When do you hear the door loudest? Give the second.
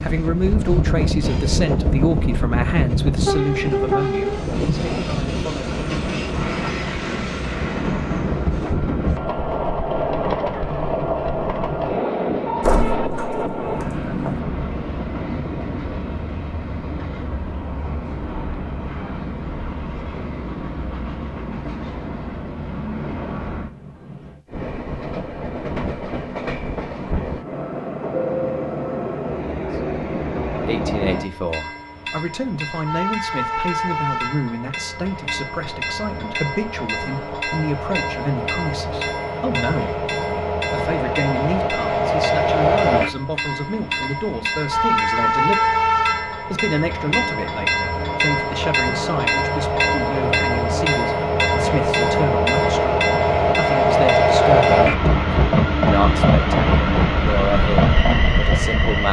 13 s.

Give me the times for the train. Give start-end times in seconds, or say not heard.
0.0-59.0.